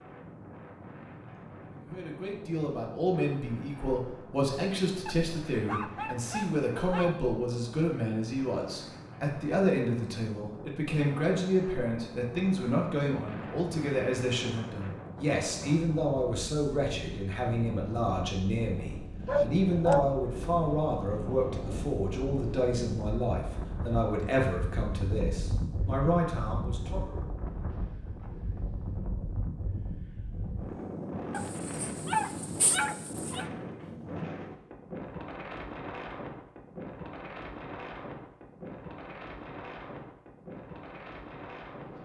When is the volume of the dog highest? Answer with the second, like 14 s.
20 s.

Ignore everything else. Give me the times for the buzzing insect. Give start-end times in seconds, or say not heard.
not heard.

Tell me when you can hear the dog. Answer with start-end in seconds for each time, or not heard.
5.0-7.2, 19.2-20.4, 31.3-33.5.